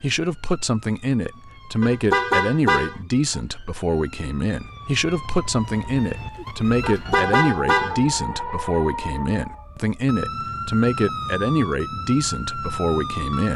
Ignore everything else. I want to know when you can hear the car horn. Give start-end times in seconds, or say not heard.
1.8-3.0, 6.8-8.0.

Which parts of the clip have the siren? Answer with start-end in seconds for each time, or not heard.
0.1-13.5.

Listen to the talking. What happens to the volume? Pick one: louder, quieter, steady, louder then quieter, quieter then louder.
steady.